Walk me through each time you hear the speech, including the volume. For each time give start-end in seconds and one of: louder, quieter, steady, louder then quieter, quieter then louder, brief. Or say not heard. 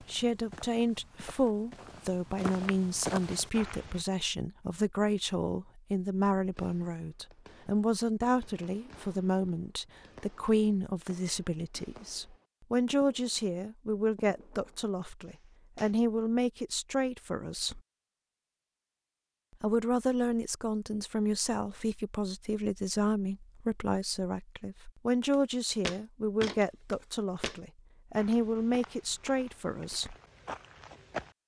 0.1-17.8 steady
19.6-30.1 steady.